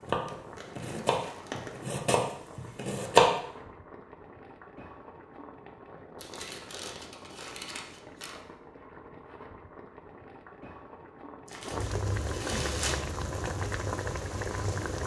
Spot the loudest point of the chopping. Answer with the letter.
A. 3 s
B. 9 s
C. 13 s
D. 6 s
A.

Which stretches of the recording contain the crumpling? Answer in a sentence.
You can hear the crumpling from 0.6 to 1.9 s, from 6.2 to 8.4 s and from 11.4 to 13.0 s.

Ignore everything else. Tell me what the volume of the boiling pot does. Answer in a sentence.
The volume of the boiling pot goes up.